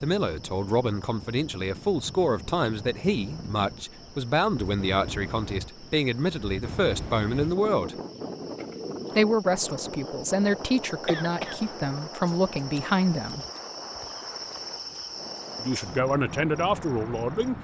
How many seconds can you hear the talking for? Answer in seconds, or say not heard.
14 s.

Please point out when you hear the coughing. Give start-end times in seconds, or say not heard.
11.1-11.7.